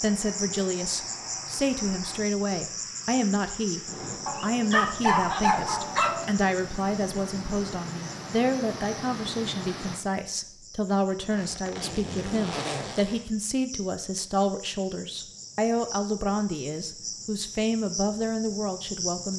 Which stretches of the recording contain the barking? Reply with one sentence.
The barking can be heard from 4.2 to 6.2 s.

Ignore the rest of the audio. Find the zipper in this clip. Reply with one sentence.
You can hear the zipper from 10.8 to 13.2 s.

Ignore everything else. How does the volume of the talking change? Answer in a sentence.
The volume of the talking stays about the same.